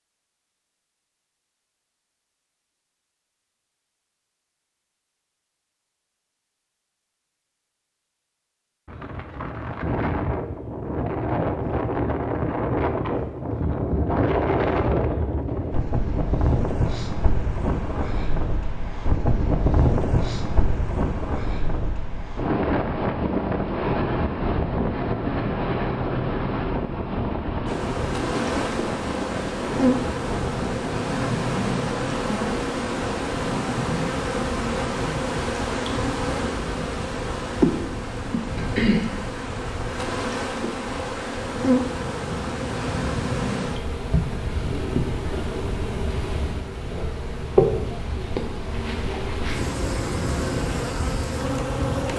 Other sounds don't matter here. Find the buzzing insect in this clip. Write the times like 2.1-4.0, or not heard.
27.6-52.1.